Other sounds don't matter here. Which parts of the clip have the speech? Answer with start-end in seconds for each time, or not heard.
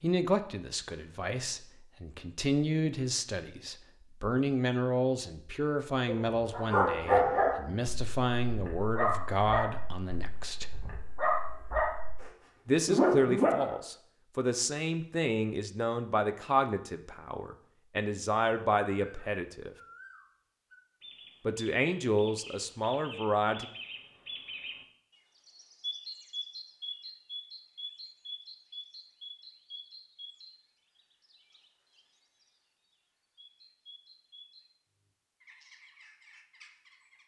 0.0-10.8, 12.7-19.8, 21.4-23.6.